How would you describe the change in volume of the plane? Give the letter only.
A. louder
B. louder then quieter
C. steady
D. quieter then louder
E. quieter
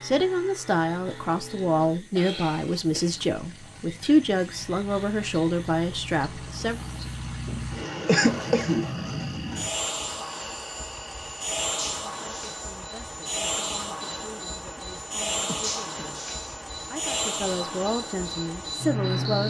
A.